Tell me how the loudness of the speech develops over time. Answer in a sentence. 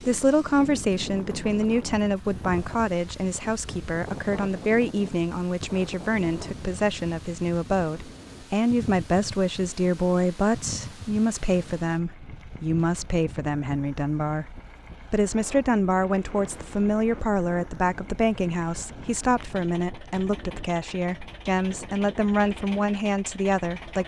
The volume of the speech stays about the same.